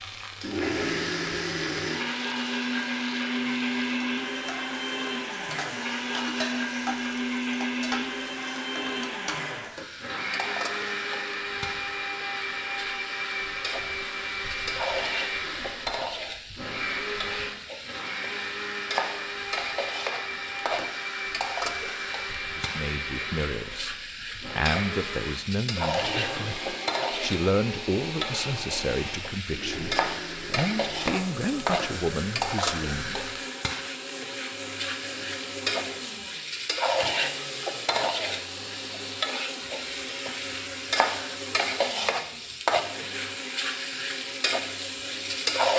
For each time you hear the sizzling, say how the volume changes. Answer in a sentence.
The sizzling can be heard from 0.0 to 45.7 s, getting louder.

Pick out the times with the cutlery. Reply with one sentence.
You can't hear the cutlery here.